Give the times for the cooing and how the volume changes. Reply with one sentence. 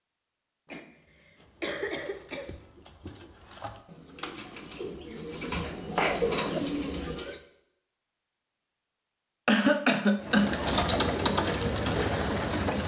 The cooing can be heard from 1.4 to 7.4 s, getting louder; and briefly from 10.2 to 12.8 s.